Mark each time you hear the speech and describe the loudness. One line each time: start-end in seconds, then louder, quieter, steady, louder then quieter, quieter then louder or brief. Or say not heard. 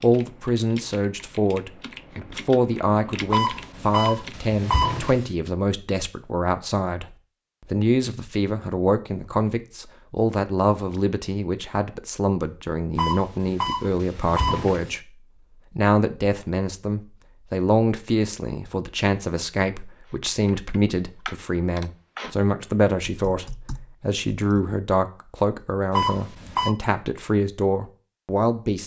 0.0-28.8 steady.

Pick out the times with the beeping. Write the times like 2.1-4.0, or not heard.
3.3-5.2, 12.9-14.9, 25.9-26.8.